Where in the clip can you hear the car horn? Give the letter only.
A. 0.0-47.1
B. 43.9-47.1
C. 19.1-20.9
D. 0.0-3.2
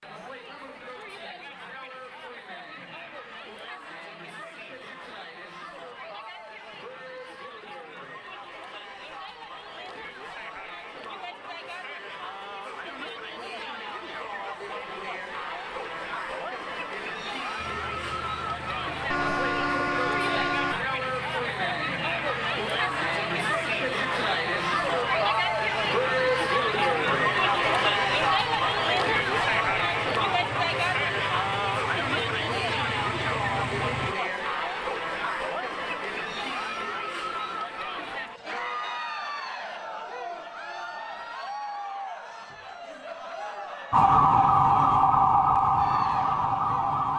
C.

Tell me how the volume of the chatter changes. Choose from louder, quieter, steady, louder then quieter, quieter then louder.
louder then quieter.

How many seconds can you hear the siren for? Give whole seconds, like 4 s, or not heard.
3 s.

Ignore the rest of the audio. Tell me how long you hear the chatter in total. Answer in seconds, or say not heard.
47 s.